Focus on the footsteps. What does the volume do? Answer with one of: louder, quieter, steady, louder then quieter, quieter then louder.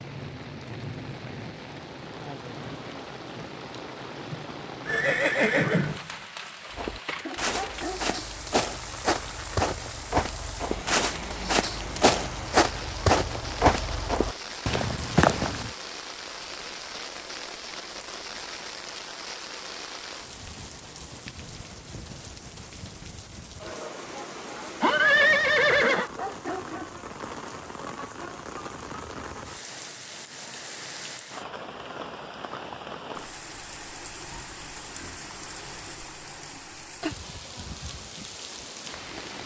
louder.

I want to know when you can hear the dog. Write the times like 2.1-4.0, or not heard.
7.2-8.2, 25.9-26.9.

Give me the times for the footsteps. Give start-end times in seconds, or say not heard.
6.7-15.7.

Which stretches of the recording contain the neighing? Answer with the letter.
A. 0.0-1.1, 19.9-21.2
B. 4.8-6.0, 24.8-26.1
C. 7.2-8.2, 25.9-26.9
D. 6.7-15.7
B.